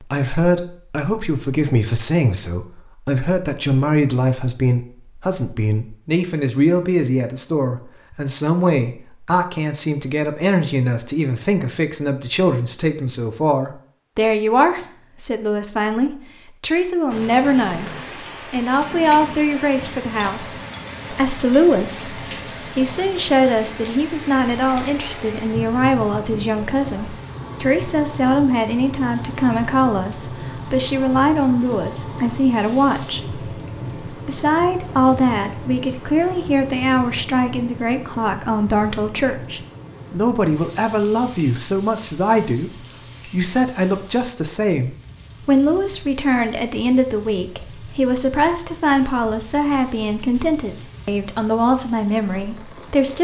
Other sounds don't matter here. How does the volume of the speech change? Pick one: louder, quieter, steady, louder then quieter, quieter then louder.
steady.